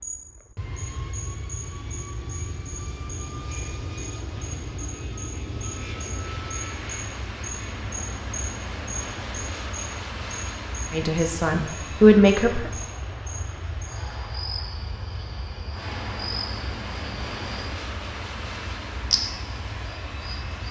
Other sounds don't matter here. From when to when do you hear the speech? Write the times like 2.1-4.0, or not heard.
10.9-12.7.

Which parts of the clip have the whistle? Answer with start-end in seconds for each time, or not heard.
not heard.